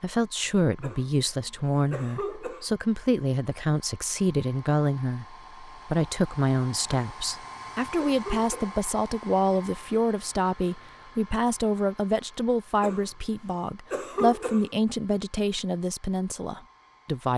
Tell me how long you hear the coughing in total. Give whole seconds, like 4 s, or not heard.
6 s.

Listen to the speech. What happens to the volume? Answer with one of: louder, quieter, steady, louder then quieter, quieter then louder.
steady.